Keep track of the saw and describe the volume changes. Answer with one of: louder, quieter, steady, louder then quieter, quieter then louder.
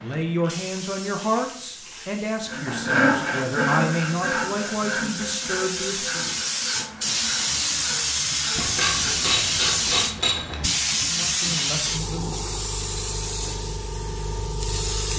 quieter.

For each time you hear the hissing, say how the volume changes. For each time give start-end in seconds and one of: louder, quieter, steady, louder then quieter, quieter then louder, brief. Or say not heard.
0.0-15.1 louder then quieter.